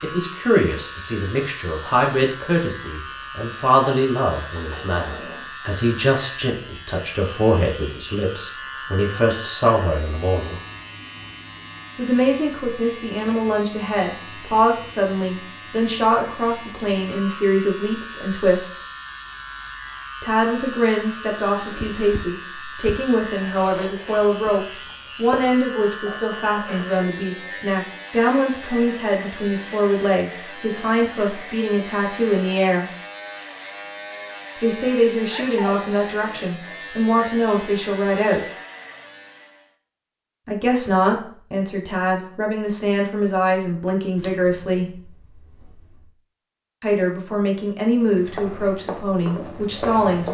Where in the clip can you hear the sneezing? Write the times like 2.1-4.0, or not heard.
35.3-35.9.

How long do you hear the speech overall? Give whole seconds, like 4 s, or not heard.
42 s.